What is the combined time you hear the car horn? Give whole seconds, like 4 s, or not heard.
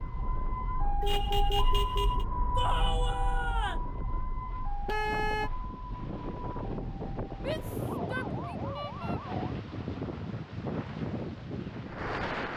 2 s.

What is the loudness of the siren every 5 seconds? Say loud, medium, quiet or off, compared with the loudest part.
loud, medium, off.